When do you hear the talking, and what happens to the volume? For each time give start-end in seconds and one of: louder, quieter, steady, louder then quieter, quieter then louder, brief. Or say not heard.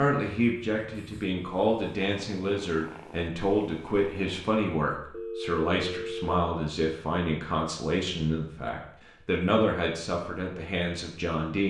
0.0-11.6 steady.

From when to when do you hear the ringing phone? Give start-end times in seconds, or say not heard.
5.1-6.5.